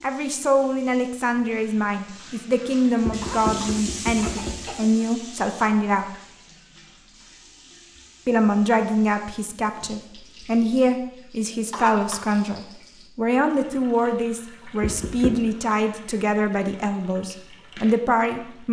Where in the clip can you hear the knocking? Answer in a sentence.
You can hear the knocking from 3.0 to 4.8 s and from 14.8 to 15.5 s.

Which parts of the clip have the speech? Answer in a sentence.
You can hear the speech from 0.0 to 6.1 s and from 8.2 to 18.6 s.